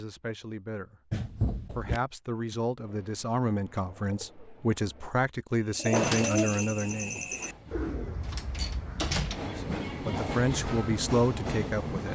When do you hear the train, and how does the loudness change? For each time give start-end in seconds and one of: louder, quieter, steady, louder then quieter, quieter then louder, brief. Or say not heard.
7.0-12.1 louder.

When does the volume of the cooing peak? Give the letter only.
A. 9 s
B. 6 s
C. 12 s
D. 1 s
B.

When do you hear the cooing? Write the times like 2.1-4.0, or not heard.
2.8-9.1.